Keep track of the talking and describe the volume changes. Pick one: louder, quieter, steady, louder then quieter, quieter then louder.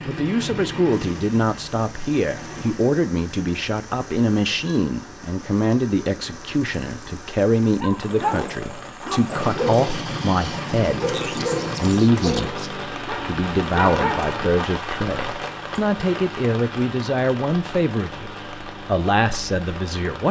steady.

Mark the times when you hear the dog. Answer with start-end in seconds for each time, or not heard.
7.8-14.3.